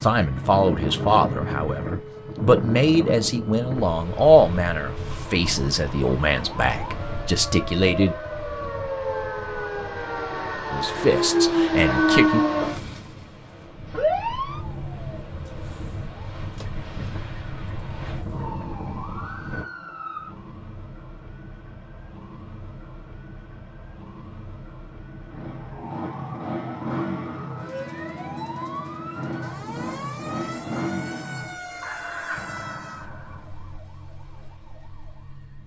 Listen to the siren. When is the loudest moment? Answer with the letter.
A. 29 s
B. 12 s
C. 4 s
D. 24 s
B.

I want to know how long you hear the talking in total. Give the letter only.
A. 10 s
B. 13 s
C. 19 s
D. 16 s
A.